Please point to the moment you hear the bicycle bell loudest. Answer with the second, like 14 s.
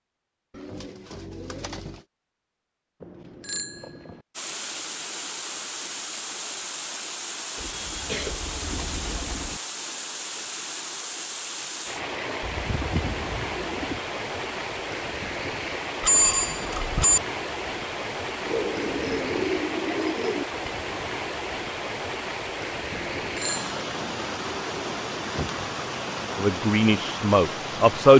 16 s.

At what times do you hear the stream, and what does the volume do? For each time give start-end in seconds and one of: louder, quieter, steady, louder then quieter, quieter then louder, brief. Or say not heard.
4.3-28.1 steady.